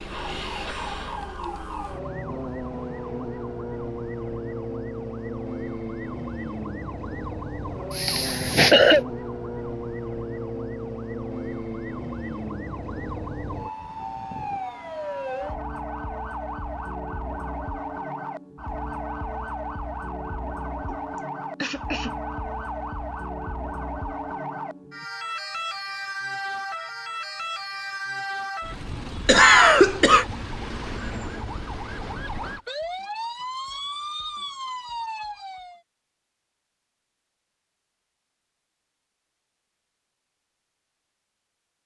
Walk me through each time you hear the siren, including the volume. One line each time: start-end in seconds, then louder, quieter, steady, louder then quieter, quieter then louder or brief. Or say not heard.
0.0-35.8 steady.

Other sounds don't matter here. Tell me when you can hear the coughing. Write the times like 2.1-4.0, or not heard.
7.9-9.0, 21.6-22.2, 29.2-30.2.